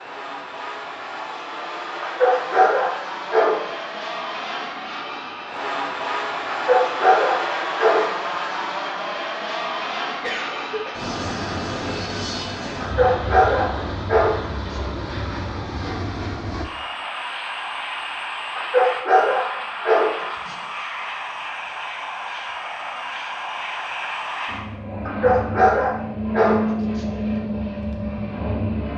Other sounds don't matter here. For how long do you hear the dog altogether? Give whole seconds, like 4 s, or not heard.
9 s.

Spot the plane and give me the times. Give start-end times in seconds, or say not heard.
0.0-28.9.